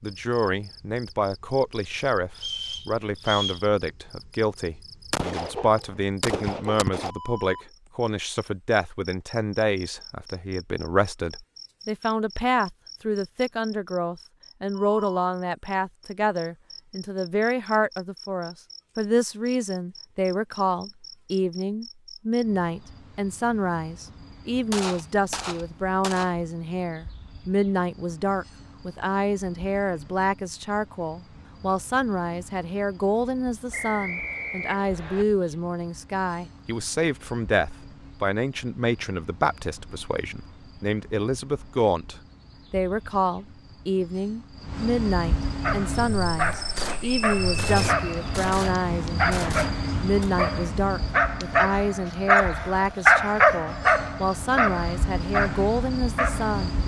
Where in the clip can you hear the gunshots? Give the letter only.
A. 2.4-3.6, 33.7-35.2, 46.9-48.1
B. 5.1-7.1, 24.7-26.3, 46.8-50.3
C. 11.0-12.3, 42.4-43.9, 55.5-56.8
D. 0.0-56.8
B.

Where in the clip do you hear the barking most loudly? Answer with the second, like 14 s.
53 s.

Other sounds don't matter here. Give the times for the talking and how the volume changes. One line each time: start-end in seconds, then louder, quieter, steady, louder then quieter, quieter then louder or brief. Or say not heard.
0.0-56.8 steady.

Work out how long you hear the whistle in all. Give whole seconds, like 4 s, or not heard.
4 s.